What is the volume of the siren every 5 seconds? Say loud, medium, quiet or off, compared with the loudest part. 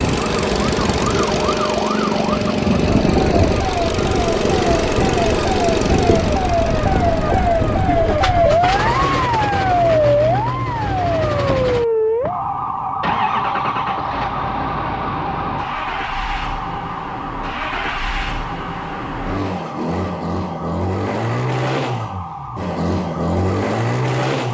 medium, loud, loud, medium, quiet.